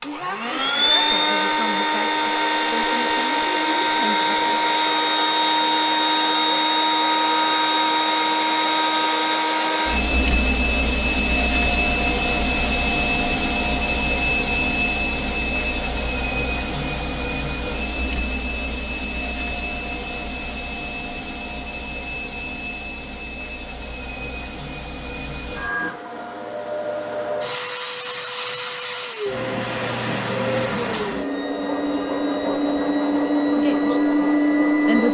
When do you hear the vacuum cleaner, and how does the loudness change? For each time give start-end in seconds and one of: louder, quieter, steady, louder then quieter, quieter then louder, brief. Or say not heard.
0.0-35.1 quieter then louder.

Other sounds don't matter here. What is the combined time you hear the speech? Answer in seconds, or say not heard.
6 s.